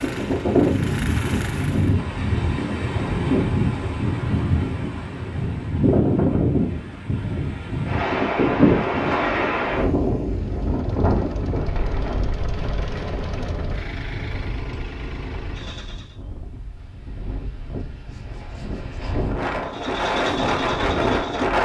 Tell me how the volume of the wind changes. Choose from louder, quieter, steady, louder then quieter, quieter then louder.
quieter then louder.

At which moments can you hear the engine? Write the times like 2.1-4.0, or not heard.
0.0-1.9, 10.3-16.2, 19.6-21.6.